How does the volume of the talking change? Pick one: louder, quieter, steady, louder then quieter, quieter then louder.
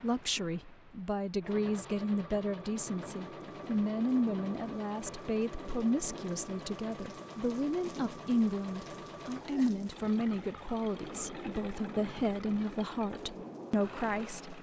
steady.